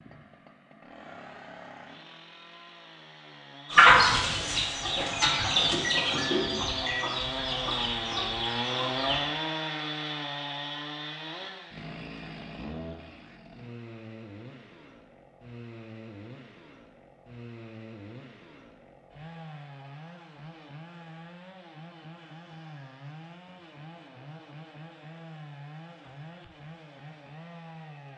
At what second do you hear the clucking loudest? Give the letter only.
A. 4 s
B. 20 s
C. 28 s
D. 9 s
A.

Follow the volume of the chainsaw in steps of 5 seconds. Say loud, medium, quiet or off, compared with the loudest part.
quiet, loud, medium, quiet, quiet, quiet.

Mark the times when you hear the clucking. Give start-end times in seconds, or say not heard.
3.7-9.2.